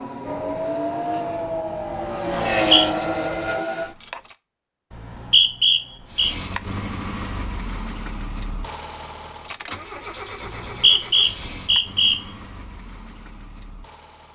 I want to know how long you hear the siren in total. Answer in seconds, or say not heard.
4 s.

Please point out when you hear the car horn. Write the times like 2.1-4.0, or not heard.
not heard.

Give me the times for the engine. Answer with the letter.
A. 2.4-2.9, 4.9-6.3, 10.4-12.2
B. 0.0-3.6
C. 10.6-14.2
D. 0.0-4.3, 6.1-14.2
D.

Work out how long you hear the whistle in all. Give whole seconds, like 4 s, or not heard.
4 s.